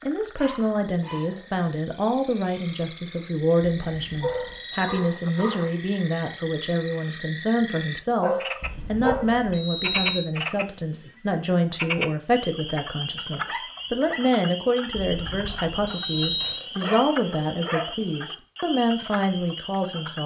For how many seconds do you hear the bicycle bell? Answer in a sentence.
The bicycle bell can be heard for 4 seconds in total.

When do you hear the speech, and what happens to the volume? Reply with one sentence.
The speech can be heard from 0.0 to 20.2 s, at a steady volume.